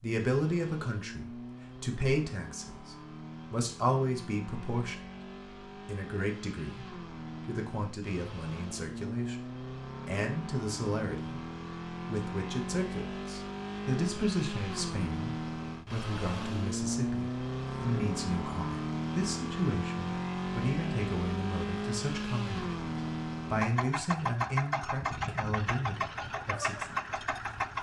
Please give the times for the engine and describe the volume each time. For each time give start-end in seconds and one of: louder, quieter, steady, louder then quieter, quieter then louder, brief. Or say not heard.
0.2-27.7 louder.